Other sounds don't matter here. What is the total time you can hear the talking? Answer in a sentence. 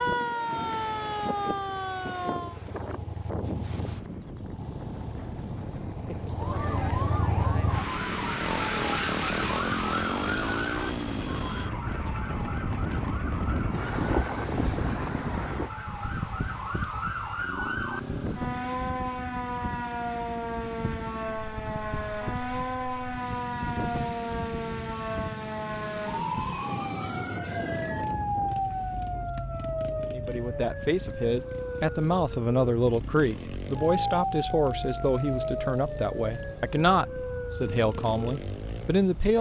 You can hear the talking for 9 seconds altogether.